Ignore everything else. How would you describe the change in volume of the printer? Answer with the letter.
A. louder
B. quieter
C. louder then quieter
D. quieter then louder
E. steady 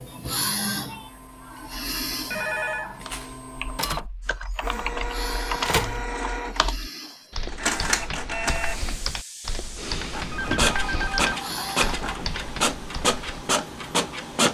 A.